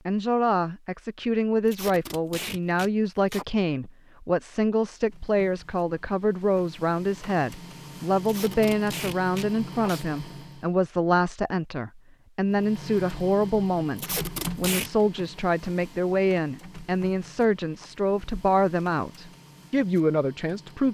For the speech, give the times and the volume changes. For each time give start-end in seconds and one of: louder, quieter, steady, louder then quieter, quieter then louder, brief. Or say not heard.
0.1-20.8 steady.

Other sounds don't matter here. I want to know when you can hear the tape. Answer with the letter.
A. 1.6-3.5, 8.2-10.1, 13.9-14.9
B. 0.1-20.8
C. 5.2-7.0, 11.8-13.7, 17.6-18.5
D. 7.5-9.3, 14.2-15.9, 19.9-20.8
A.